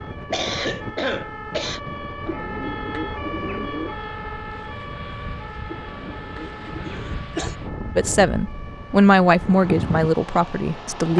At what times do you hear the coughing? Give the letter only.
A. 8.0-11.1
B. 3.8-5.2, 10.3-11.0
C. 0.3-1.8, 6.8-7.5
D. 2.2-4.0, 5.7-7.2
C.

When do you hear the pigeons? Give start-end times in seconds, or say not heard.
2.2-4.0, 5.7-7.2.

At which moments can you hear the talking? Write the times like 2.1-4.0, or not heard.
8.0-11.1.